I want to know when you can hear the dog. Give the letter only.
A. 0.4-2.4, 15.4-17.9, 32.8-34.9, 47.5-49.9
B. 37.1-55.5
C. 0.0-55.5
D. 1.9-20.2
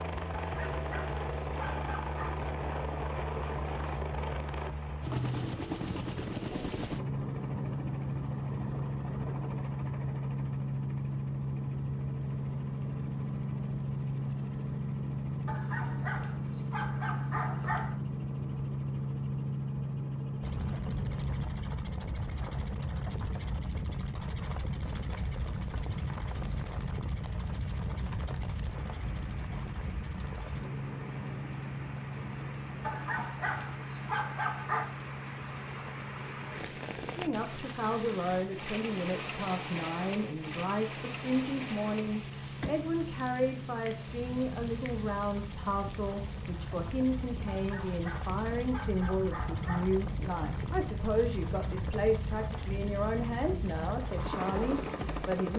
A.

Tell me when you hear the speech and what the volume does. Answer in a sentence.
The speech can be heard from 37.1 to 55.5 s, at a steady volume.